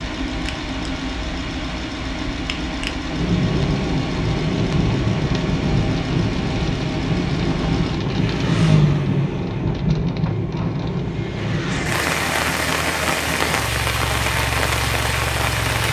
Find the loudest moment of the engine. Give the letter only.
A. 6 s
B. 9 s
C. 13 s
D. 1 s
B.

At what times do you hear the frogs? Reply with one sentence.
The frogs can't be heard in this clip.